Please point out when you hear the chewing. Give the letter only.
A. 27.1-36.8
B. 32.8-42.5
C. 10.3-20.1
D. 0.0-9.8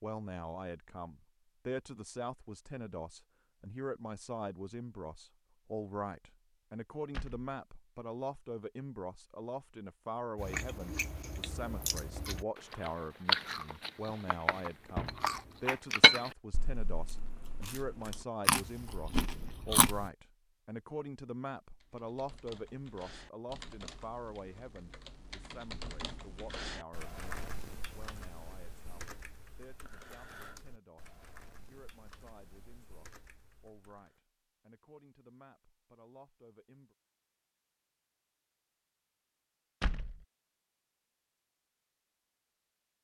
C.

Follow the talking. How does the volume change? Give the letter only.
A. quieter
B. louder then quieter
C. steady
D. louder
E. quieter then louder
A.